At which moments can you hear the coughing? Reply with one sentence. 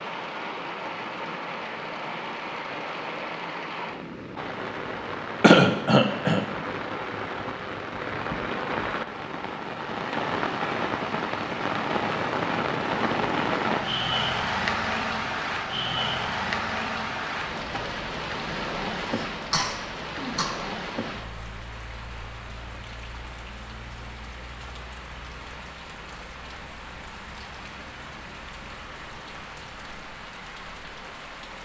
The coughing can be heard from 5.4 to 6.5 s and from 19.0 to 20.5 s.